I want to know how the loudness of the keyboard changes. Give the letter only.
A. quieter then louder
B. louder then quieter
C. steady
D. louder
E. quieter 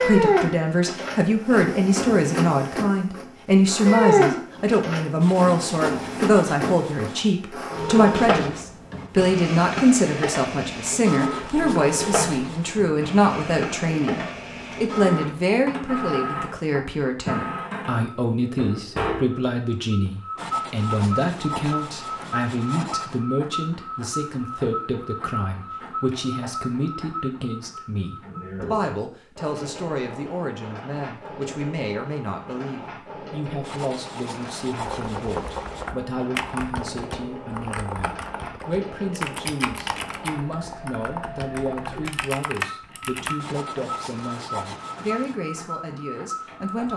C.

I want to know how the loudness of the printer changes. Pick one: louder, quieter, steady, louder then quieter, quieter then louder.
quieter.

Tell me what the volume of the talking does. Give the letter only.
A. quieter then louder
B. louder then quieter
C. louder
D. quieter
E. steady
D.